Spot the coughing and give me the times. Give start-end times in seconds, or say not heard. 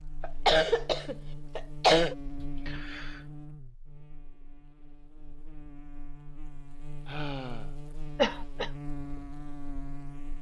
0.2-2.1, 8.2-8.7.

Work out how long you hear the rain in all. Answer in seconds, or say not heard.
not heard.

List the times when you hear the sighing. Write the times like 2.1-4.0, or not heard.
2.4-3.3, 7.0-7.8.